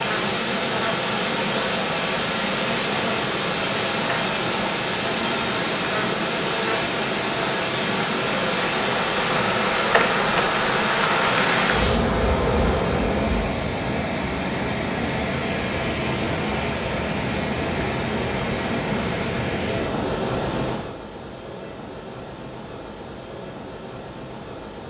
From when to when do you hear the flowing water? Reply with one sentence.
The flowing water can be heard from 0.0 to 24.8 s.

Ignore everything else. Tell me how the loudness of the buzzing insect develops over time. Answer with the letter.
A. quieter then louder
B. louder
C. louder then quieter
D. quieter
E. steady
B.